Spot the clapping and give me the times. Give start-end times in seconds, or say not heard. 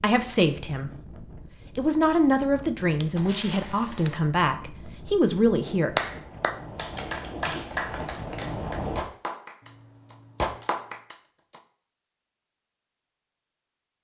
6.0-11.6.